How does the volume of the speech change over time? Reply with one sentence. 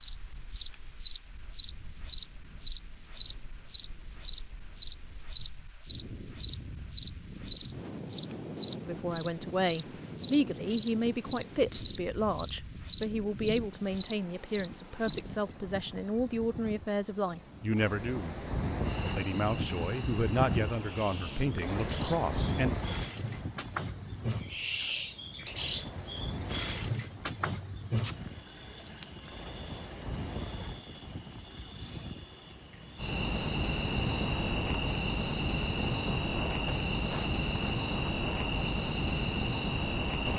The loudness of the speech stays about the same.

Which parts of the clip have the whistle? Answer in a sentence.
The whistle can't be heard in this clip.